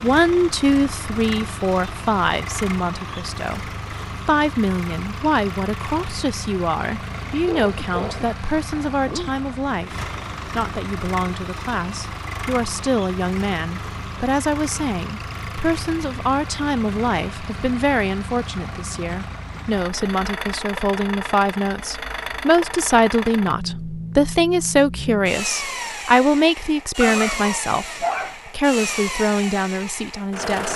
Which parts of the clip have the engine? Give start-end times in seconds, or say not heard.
0.0-30.7.